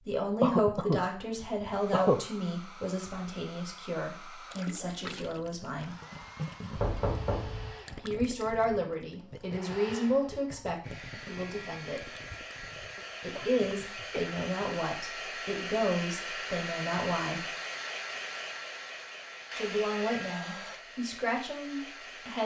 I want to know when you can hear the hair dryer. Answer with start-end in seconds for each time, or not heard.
1.6-22.4.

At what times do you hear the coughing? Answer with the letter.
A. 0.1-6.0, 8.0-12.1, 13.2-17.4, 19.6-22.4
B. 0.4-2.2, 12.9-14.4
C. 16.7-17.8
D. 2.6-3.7
B.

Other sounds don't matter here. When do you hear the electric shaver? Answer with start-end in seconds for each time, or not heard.
not heard.